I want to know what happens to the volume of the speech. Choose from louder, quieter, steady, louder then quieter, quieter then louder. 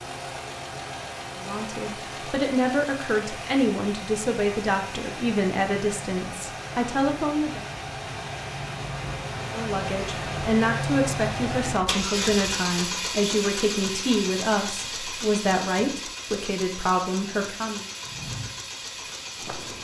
steady.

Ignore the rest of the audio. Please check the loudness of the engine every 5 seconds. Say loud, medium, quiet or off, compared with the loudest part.
medium, medium, loud, medium.